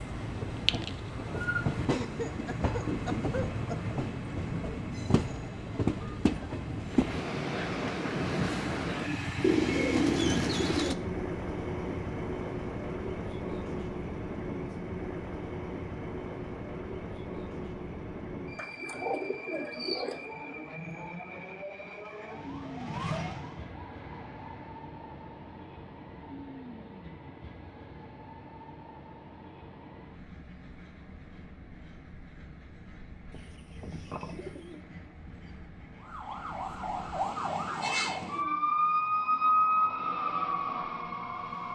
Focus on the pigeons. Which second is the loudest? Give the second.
10 s.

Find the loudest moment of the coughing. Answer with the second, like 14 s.
2 s.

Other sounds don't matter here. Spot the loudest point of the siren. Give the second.
39 s.